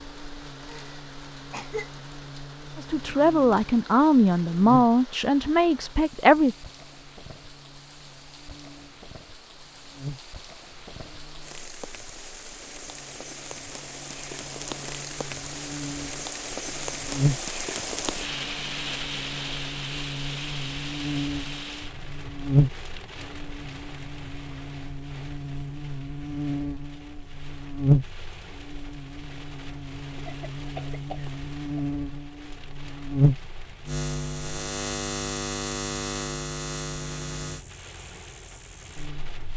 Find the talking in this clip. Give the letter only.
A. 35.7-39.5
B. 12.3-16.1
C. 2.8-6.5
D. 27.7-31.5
C.